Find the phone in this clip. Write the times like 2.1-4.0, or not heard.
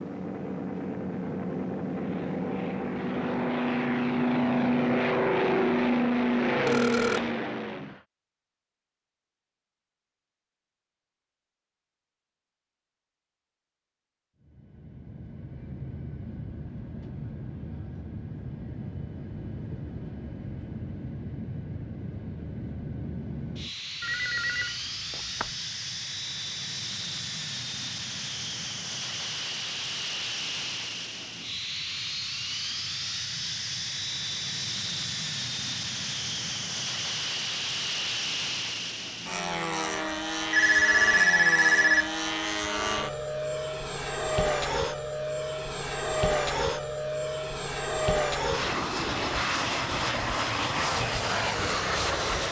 6.7-7.2, 24.0-25.5, 40.5-42.1.